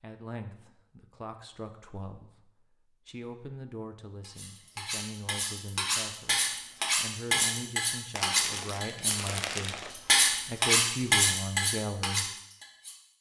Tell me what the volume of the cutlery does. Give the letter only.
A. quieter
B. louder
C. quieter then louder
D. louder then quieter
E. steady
B.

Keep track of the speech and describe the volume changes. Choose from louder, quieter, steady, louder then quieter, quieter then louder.
louder.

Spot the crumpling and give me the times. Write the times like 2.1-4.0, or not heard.
8.2-9.9.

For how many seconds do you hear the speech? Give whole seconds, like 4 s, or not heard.
12 s.